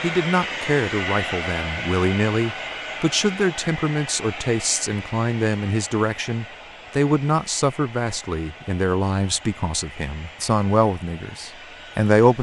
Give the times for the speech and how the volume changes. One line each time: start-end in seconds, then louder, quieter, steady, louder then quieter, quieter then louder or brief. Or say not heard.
0.0-12.3 steady.